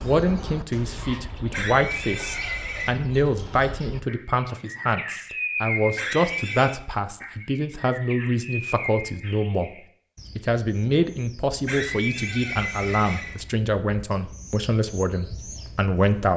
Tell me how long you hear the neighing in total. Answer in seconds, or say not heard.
4 s.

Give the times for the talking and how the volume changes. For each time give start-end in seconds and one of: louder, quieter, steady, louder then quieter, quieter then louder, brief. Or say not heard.
0.0-16.3 steady.